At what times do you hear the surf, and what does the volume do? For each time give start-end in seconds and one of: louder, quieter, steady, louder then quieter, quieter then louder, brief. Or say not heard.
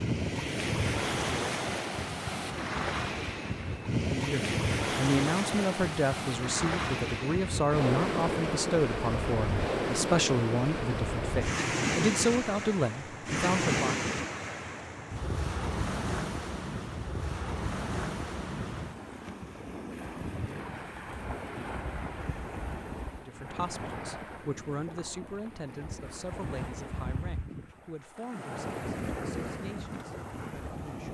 0.0-31.1 quieter.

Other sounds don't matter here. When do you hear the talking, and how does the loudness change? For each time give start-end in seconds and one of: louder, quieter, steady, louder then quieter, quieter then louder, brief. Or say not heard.
4.1-14.1 steady
23.1-31.1 quieter.